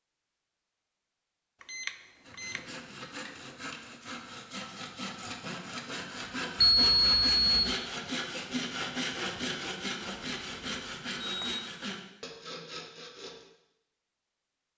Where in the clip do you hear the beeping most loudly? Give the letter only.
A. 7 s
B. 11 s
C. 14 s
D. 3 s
A.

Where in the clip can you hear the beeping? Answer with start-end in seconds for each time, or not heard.
1.6-2.6, 6.6-7.8, 10.0-11.6.